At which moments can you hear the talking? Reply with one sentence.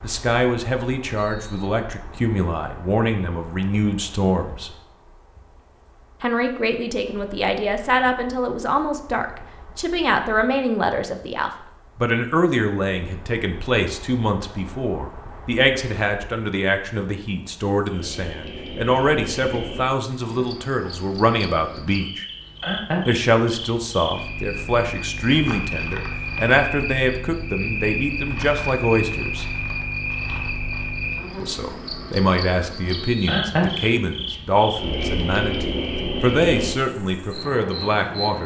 You can hear the talking from 0.0 to 4.7 s, from 6.2 to 22.2 s, from 23.1 to 29.4 s and from 31.4 to 38.4 s.